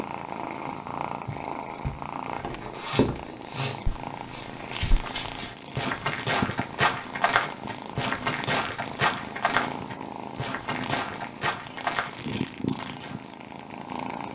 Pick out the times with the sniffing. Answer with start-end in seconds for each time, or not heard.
2.8-3.8.